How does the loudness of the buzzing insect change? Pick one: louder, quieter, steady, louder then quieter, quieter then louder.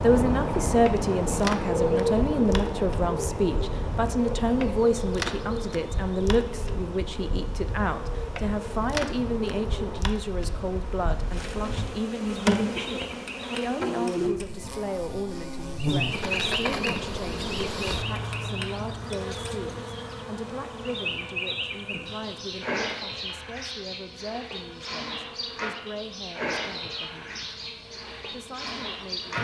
louder then quieter.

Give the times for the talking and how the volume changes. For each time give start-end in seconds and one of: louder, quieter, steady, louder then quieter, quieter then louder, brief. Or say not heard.
0.0-27.6 quieter
28.3-29.3 brief.